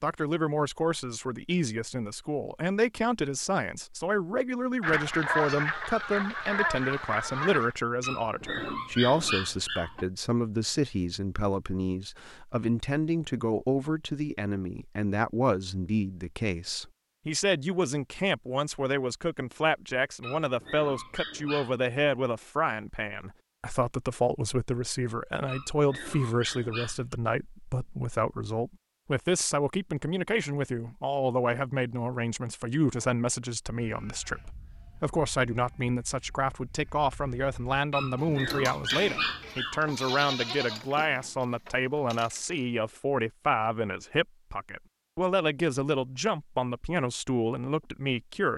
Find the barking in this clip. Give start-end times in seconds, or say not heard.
8.0-10.1, 20.2-21.8, 25.4-27.1, 37.9-40.0.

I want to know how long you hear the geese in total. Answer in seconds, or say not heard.
3 s.